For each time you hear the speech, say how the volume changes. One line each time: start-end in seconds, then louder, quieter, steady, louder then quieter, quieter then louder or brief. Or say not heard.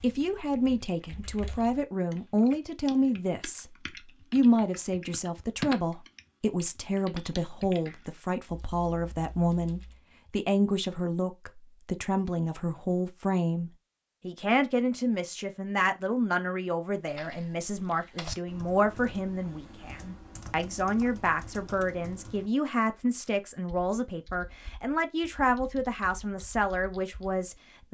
0.0-27.8 steady.